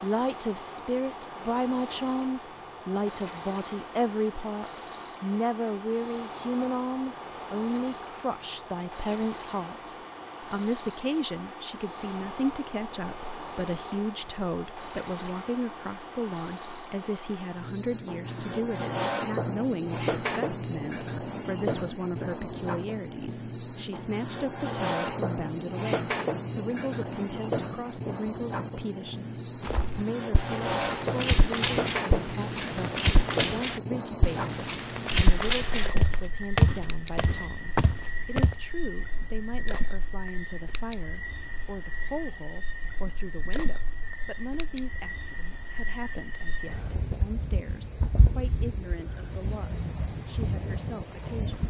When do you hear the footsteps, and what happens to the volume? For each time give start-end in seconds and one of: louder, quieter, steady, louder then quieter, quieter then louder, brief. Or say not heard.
29.6-38.5 louder.